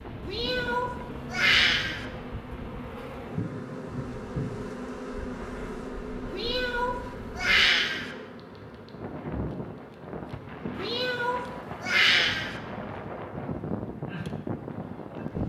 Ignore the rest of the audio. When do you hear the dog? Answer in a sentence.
You can't hear the dog here.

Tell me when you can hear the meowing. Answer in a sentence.
You can hear the meowing from 0.2 to 2.0 s, from 6.3 to 8.1 s and from 10.8 to 12.6 s.